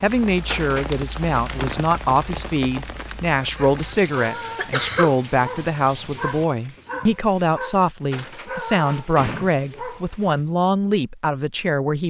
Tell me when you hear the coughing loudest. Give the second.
5 s.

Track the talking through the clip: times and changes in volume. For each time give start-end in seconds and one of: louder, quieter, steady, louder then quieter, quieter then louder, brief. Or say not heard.
0.0-12.0 steady.